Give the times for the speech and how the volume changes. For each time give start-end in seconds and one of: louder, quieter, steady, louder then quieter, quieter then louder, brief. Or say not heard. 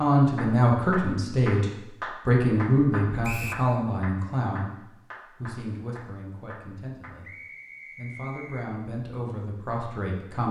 0.0-10.4 quieter then louder.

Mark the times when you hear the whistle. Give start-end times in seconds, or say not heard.
3.2-3.6, 7.2-8.7.